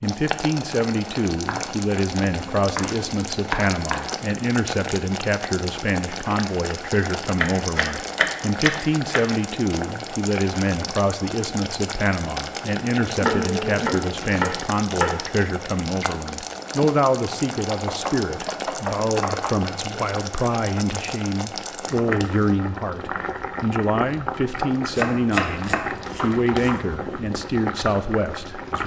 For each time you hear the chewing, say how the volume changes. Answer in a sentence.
The chewing can't be heard in this clip.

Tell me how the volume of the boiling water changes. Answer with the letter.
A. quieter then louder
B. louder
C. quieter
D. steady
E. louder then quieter
D.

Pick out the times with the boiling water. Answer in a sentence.
The boiling water can be heard from 0.0 to 28.8 s.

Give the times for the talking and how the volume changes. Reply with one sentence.
The talking can be heard from 0.0 to 28.8 s, at a steady volume.